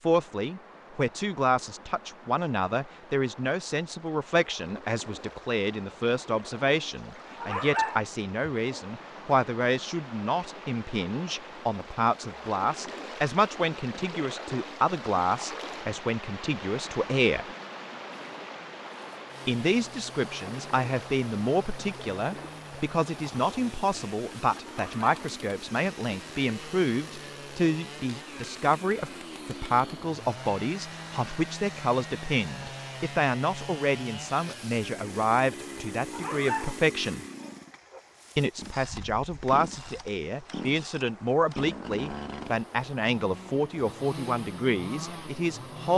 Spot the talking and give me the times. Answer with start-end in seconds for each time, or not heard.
0.0-17.4, 19.4-37.2, 38.4-45.9.